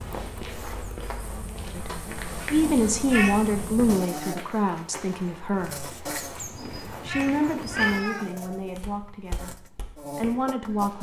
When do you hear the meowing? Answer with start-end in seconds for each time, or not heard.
1.9-3.5, 5.8-8.3.